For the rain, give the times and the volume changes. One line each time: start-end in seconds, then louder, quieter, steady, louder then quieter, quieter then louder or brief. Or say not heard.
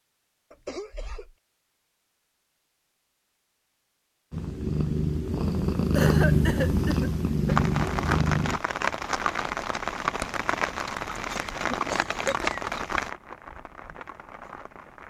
7.5-15.0 quieter.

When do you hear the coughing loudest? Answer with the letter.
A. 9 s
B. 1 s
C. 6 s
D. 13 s
C.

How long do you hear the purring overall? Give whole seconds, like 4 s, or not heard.
4 s.